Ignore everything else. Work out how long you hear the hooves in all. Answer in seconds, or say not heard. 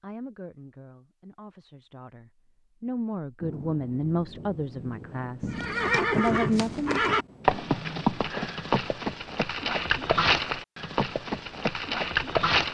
7 s.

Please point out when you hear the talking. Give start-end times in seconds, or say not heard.
0.0-7.1.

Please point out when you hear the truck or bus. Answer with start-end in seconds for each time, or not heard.
not heard.